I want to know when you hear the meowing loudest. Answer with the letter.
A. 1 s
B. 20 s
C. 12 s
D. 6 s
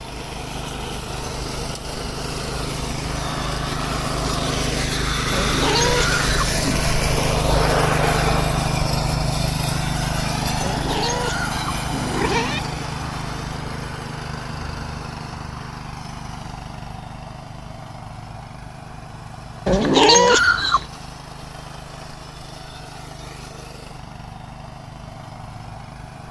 B.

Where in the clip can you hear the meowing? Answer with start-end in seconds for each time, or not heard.
5.3-6.8, 10.6-12.6, 19.6-20.9.